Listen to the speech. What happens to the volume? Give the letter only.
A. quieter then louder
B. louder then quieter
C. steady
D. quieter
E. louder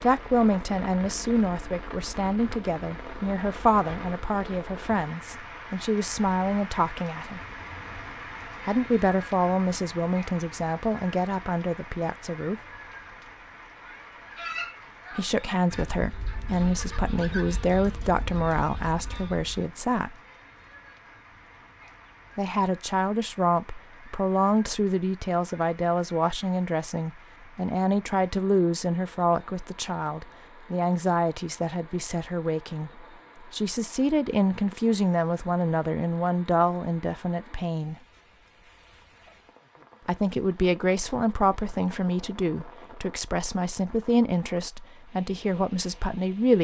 C.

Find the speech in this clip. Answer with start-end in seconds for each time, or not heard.
0.0-7.4, 8.7-12.6, 15.2-20.1, 22.4-38.0, 40.0-46.5.